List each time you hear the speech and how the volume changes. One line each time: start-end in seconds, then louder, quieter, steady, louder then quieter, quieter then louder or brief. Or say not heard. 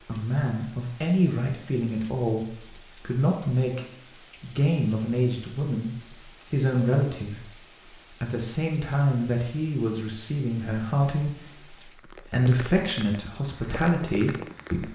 0.1-14.9 steady.